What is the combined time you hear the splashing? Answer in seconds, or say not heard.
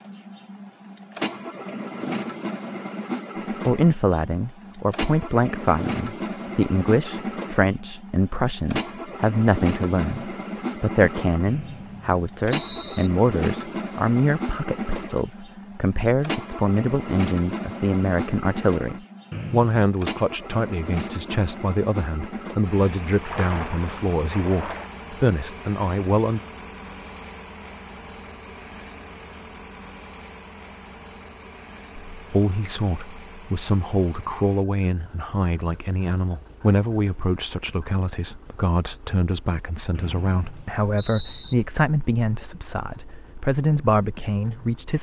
2 s.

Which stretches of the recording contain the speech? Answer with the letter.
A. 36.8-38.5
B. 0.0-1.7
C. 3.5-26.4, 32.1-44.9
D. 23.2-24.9
C.